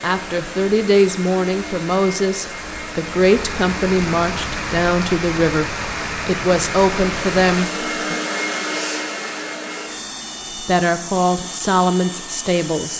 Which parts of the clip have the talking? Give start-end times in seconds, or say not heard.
0.0-8.2, 10.6-12.9.